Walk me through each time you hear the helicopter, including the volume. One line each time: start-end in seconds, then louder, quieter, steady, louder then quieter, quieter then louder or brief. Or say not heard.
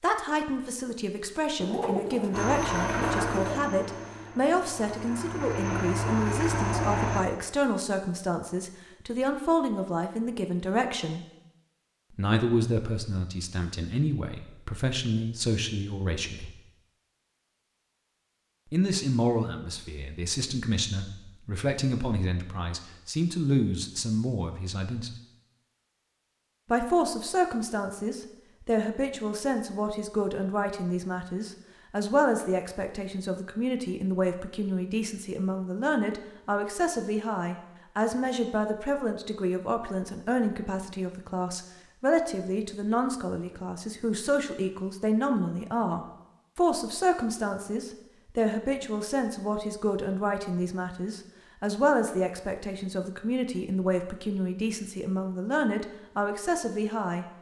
2.3-7.2 quieter then louder.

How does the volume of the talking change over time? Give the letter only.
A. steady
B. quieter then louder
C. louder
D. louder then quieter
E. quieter
A.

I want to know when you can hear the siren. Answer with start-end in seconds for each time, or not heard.
not heard.